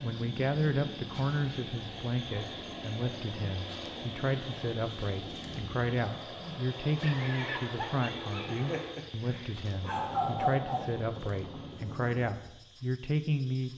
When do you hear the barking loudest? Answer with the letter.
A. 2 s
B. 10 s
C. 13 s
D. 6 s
B.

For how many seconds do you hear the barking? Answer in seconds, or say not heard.
4 s.